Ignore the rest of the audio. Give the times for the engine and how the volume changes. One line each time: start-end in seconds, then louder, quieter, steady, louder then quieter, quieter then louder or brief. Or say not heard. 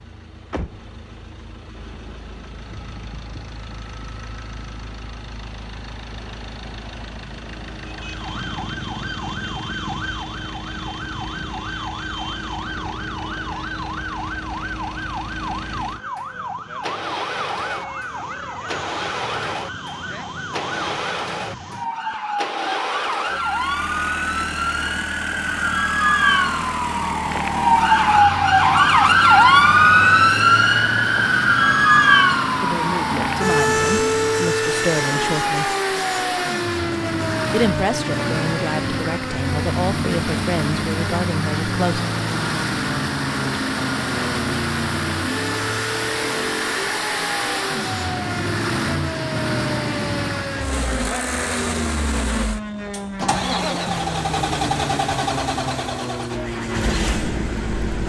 0.0-58.0 louder.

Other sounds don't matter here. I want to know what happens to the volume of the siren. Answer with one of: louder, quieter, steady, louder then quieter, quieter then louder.
louder then quieter.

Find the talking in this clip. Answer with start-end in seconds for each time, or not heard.
32.6-35.8, 37.5-42.0.